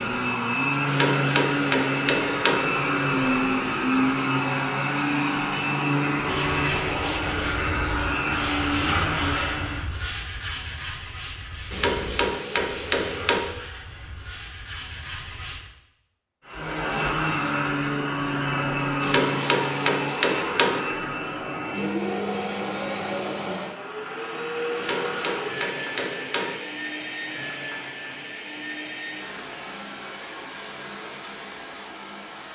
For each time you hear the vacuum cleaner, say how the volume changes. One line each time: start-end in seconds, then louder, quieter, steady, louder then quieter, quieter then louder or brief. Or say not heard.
0.0-9.9 steady
16.4-32.4 quieter.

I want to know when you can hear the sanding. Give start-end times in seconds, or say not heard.
6.1-15.7.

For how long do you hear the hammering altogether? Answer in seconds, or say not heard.
7 s.